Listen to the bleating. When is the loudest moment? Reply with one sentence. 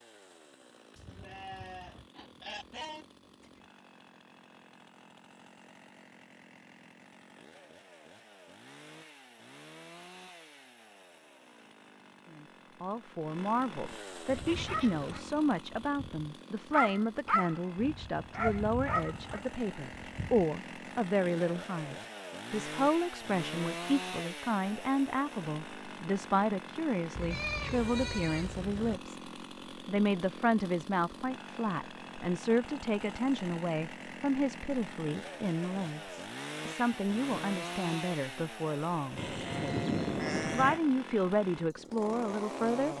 The volume of the bleating peaks at 40 seconds.